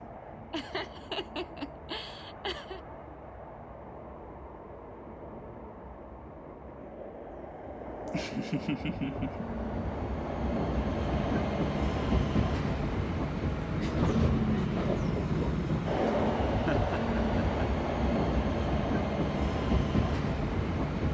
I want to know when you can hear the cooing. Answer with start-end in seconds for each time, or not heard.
not heard.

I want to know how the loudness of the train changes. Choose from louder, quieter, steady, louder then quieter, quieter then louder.
louder.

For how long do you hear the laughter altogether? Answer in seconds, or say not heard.
5 s.